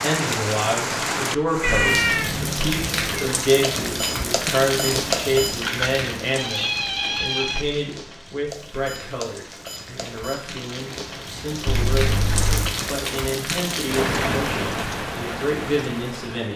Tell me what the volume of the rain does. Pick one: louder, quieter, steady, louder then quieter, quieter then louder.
quieter then louder.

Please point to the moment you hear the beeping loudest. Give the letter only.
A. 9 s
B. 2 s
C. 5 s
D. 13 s
C.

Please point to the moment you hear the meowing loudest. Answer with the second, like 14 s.
2 s.